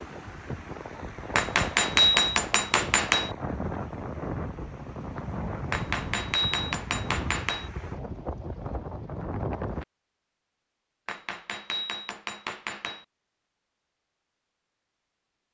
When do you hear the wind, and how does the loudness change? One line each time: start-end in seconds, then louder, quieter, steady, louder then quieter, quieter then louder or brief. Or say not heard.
0.0-9.8 steady.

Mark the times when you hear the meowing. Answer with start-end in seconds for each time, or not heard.
not heard.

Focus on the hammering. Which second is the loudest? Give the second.
2 s.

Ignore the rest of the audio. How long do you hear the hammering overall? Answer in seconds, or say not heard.
6 s.